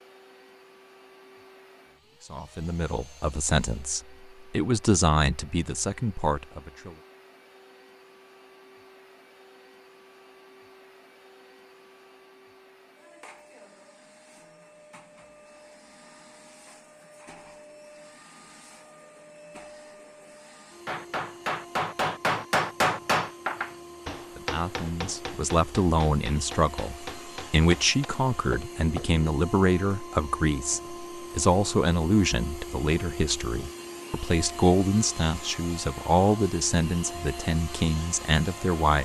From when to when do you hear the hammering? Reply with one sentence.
The hammering can be heard from 20.9 to 29.1 s.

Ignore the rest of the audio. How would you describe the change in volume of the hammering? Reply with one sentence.
The loudness of the hammering goes down.